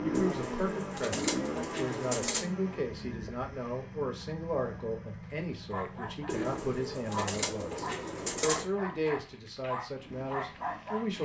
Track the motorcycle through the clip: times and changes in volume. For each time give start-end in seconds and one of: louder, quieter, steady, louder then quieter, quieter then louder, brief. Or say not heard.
0.0-11.2 quieter.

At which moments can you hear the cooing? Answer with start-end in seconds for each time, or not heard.
0.1-2.5, 6.2-8.7.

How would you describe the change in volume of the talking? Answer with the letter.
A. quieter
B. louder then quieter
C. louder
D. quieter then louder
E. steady
E.